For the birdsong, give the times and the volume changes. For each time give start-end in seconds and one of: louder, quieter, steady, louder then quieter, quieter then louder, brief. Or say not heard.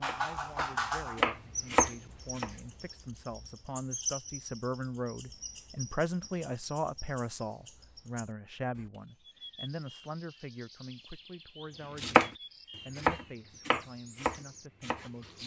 0.0-15.4 quieter.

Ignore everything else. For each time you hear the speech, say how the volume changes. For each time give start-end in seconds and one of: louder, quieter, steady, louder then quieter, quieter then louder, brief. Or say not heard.
0.0-15.4 louder then quieter.